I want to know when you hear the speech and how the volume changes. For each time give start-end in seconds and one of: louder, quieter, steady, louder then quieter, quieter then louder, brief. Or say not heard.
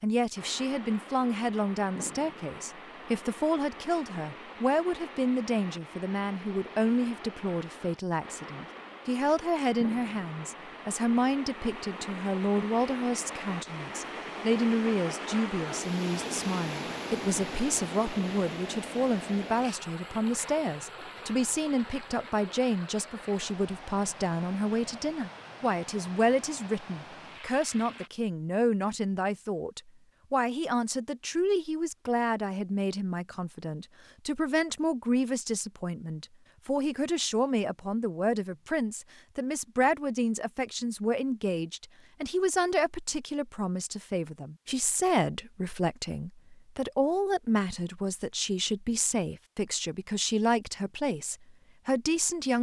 0.0-52.5 steady.